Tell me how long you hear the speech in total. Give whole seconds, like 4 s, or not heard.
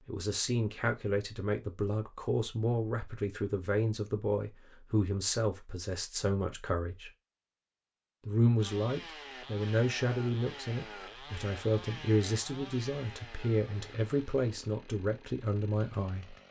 15 s.